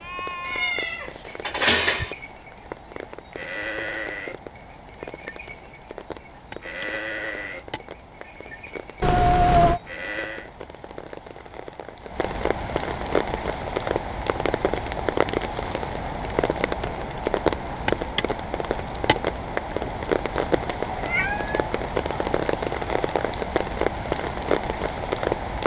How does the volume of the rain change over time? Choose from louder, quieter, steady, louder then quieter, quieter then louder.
louder.